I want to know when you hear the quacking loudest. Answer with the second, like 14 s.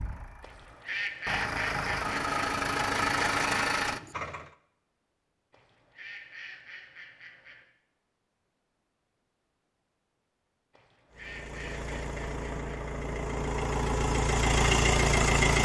1 s.